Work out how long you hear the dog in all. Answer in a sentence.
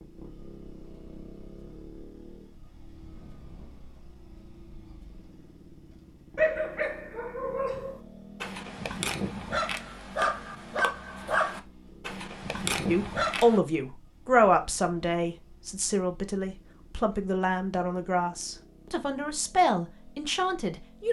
The dog can be heard for 7 seconds in total.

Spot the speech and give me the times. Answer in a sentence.
You can hear the speech from 12.8 to 21.0 s.